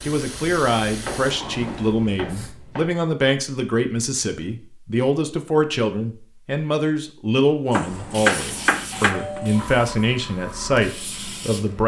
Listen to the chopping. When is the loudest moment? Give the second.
8 s.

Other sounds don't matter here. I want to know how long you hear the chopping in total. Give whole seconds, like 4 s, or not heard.
4 s.